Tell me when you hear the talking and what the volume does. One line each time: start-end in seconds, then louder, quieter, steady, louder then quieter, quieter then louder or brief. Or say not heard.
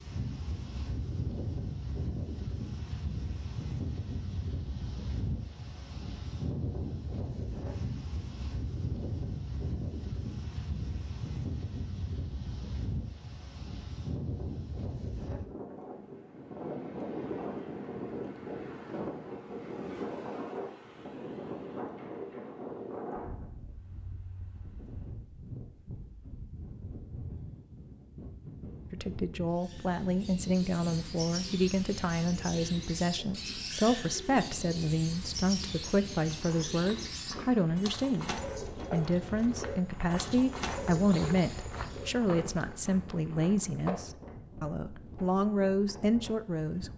28.9-46.9 steady.